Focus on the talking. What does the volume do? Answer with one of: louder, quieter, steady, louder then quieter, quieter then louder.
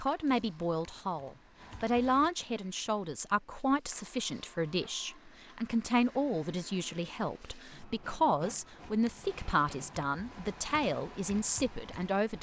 steady.